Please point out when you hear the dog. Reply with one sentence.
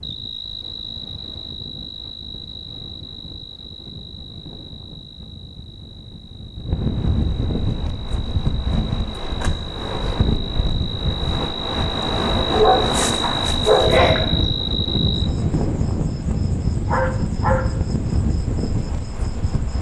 You can hear the dog from 12.5 to 14.2 s.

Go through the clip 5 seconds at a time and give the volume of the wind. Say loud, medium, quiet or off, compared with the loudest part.
quiet, loud, loud, loud.